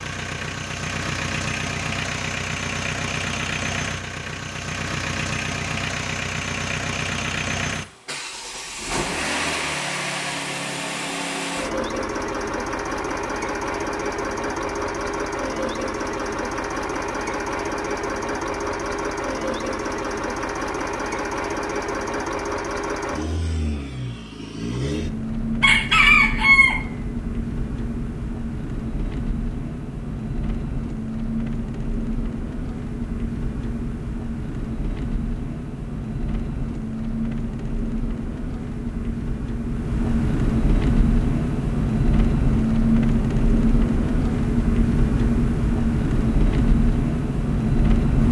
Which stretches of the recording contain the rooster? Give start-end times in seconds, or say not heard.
25.6-27.1.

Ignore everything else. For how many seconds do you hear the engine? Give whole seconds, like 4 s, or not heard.
48 s.